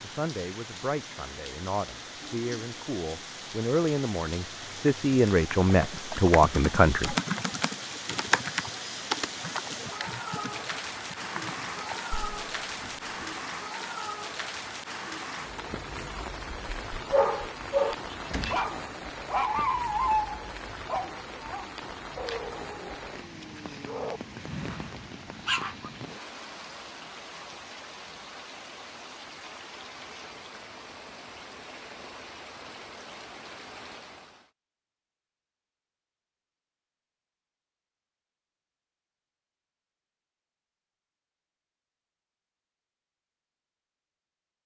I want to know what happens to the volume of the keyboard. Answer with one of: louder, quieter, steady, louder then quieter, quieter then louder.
louder then quieter.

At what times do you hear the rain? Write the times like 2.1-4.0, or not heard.
0.0-34.5.